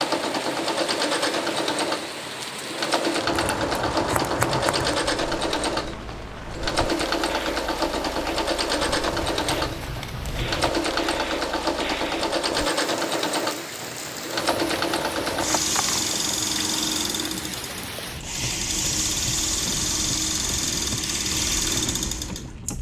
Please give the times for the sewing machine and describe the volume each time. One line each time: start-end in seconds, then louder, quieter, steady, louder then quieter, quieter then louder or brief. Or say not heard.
0.0-22.7 steady.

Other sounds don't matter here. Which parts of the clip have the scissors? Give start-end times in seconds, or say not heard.
3.2-5.0, 8.8-10.7, 15.3-16.1.